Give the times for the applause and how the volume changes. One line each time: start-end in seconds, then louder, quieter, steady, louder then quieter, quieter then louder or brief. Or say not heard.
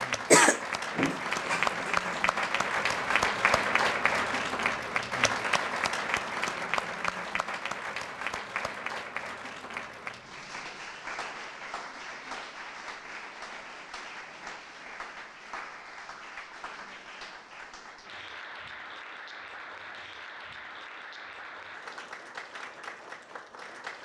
0.0-23.9 quieter.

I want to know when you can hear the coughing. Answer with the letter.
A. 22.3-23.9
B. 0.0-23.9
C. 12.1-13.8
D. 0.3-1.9
D.